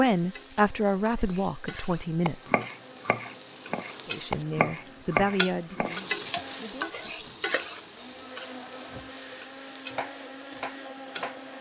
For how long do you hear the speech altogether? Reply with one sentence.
The speech can be heard for 6 seconds in total.